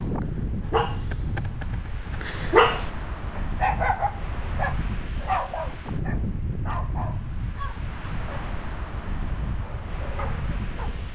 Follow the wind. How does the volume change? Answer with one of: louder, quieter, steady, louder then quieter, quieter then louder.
steady.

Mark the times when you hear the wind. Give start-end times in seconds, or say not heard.
0.0-11.1.